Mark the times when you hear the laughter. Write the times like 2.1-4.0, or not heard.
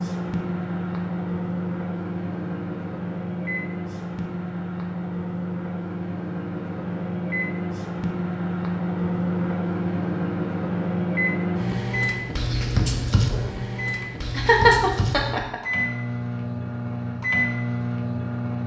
14.3-15.6.